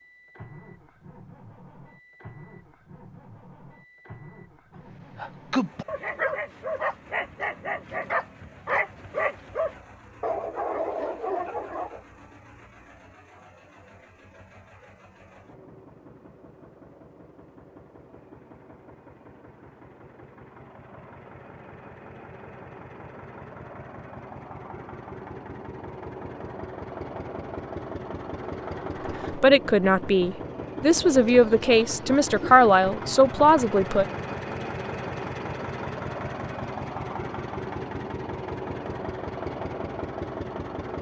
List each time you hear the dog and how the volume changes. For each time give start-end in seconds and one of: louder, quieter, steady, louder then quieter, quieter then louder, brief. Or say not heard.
5.2-12.0 steady.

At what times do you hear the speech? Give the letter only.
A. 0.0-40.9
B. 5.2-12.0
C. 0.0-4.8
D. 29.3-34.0
D.